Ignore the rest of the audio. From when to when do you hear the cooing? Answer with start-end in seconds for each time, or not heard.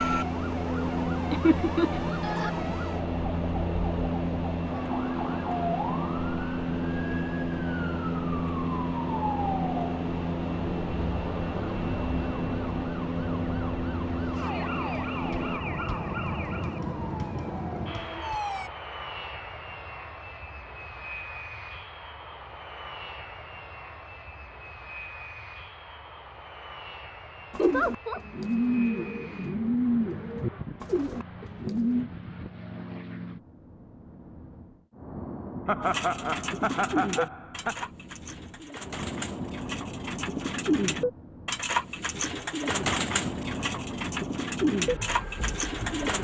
27.5-32.1, 35.8-46.1.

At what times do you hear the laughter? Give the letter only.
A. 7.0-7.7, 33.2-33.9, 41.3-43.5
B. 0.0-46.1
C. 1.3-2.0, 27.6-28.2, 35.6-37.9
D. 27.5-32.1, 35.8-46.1
C.